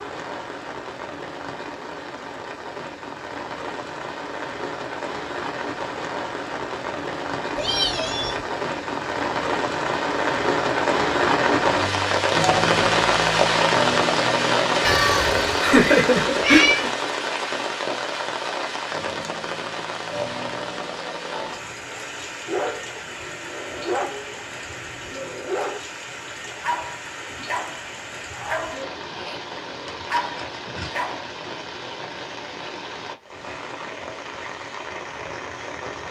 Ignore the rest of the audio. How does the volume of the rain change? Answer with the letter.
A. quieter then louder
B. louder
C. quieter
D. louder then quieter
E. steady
D.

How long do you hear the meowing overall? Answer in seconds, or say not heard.
4 s.